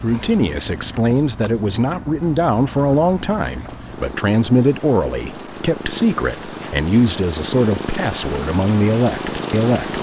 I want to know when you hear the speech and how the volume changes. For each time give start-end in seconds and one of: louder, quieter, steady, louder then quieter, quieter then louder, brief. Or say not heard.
0.0-9.9 steady.